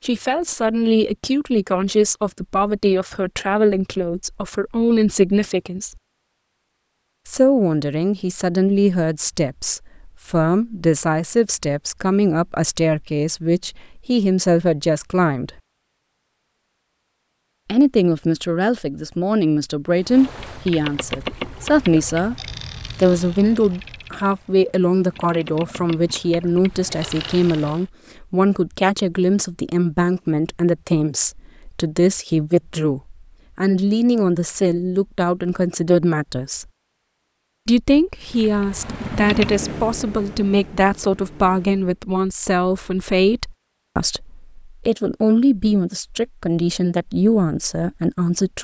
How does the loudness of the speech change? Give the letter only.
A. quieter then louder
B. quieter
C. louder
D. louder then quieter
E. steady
E.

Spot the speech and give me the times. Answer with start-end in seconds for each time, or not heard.
0.0-5.9, 7.2-15.5, 17.6-22.4, 22.9-36.6, 37.6-48.5.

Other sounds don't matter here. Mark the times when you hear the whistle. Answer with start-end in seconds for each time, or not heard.
not heard.